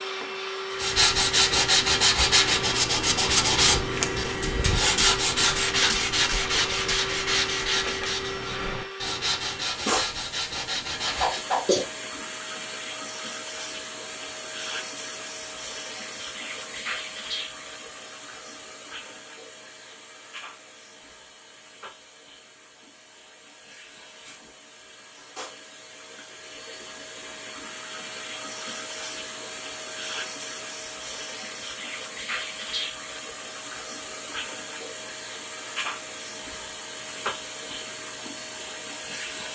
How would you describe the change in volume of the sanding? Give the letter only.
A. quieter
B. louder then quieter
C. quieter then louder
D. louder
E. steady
A.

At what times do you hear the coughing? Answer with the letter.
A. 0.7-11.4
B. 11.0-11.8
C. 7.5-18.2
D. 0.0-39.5
B.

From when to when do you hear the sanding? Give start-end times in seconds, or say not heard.
0.7-11.4.